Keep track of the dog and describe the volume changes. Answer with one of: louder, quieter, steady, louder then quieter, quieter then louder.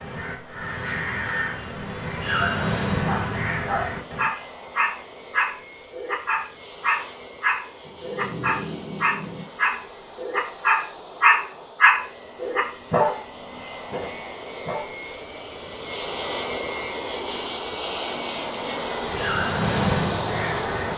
louder then quieter.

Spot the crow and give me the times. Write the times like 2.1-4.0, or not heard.
0.0-4.3, 19.0-20.9.